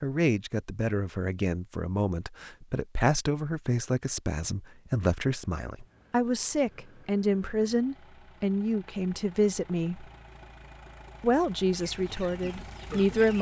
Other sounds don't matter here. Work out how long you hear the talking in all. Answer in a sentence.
You can hear the talking for 12 seconds altogether.